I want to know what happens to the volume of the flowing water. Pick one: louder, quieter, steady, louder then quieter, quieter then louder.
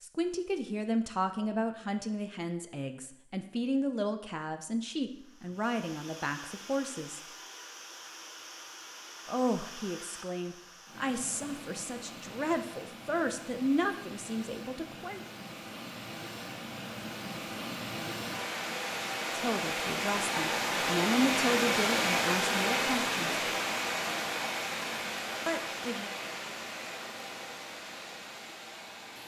louder then quieter.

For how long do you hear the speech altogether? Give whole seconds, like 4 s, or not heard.
18 s.